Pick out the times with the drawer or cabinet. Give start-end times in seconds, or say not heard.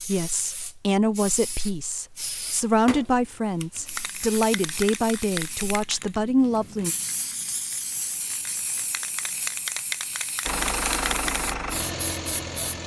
not heard.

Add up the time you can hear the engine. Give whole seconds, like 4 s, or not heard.
2 s.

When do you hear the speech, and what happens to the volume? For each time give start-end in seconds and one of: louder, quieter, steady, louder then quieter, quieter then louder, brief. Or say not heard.
0.1-7.0 steady.